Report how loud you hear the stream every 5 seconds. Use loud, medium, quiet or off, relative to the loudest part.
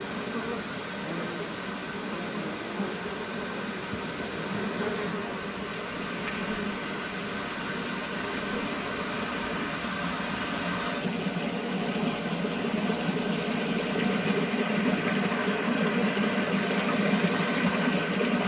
medium, medium, loud, loud.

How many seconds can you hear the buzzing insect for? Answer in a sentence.
The buzzing insect can be heard for 10 seconds in total.